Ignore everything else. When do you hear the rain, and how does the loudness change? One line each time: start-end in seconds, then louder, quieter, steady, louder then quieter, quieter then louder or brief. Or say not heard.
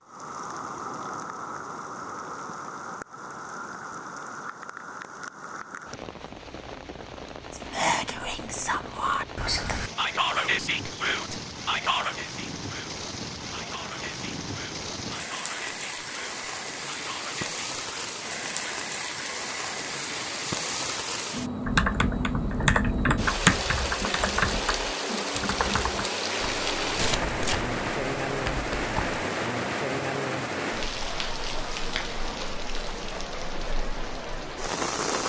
0.0-35.2 louder.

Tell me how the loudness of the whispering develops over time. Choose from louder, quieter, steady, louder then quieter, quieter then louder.
quieter.